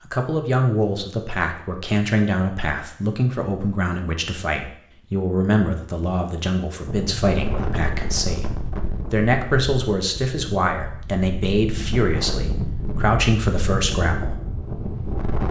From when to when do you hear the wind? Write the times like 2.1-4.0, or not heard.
6.8-15.4.